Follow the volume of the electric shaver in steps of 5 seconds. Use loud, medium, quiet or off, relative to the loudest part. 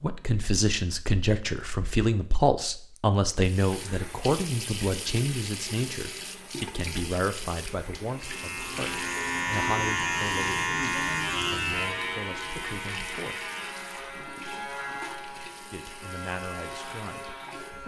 off, loud, loud, medium.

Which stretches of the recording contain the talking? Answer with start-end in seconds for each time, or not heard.
0.0-13.5, 15.7-17.4.